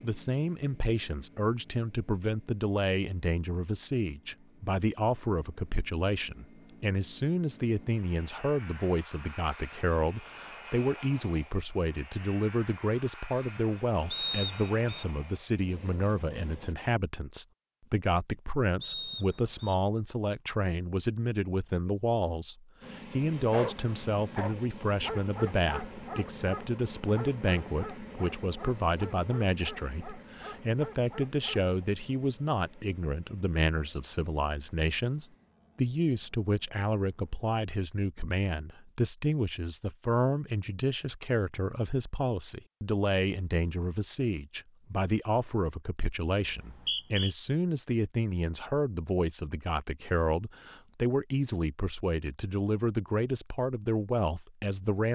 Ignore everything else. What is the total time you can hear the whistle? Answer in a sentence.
The whistle can be heard for 3 seconds in total.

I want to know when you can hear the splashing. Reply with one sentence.
The splashing can't be heard in this clip.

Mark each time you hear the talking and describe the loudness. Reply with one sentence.
The talking can be heard from 0.0 to 55.0 s, at a steady volume.